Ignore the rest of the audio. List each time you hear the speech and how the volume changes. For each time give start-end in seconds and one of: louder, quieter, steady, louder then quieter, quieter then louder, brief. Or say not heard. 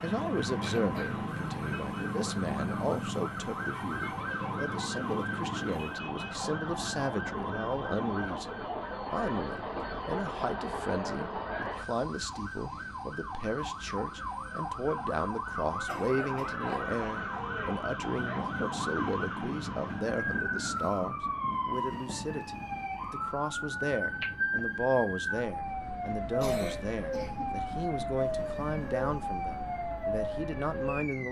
0.0-31.2 steady.